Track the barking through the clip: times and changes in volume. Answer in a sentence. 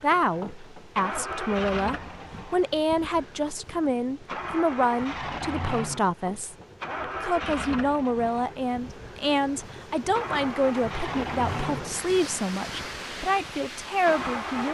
The barking can't be heard in this clip.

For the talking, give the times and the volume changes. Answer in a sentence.
The talking can be heard from 0.0 to 14.6 s, at a steady volume.